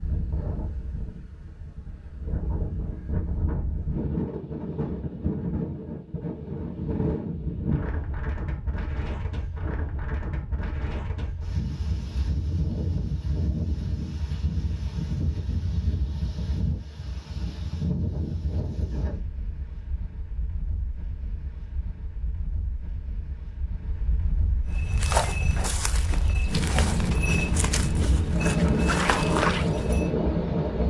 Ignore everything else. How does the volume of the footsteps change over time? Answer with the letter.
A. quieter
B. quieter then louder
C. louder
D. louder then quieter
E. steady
B.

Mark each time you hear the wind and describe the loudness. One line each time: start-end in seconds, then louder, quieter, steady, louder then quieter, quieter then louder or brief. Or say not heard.
0.0-30.8 quieter then louder.